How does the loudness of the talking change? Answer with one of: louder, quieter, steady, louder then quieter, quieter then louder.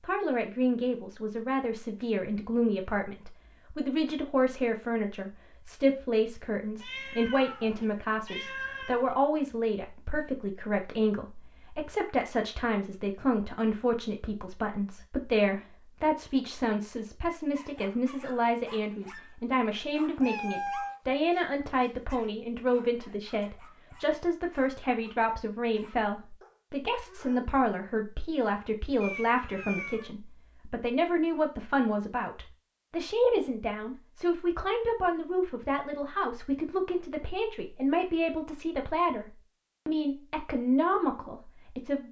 steady.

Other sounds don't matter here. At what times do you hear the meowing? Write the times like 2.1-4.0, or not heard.
6.8-9.2, 20.2-21.0, 29.0-30.1.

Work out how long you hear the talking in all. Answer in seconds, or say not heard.
42 s.